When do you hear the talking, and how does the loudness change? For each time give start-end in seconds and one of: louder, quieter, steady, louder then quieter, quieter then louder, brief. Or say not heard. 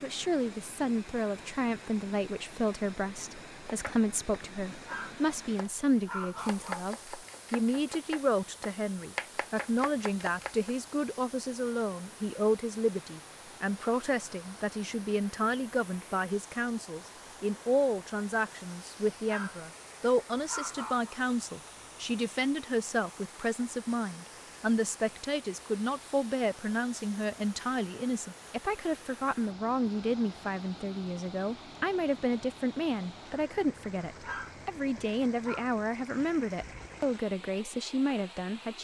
0.0-38.7 steady.